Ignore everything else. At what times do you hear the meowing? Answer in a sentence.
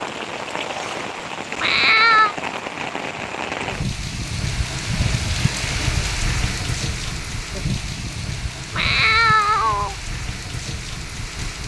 The meowing can be heard from 1.6 to 2.4 s and from 8.7 to 9.9 s.